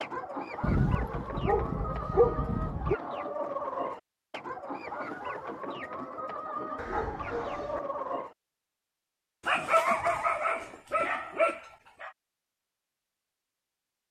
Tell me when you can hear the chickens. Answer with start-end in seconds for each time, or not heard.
0.0-8.3.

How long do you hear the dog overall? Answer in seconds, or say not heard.
6 s.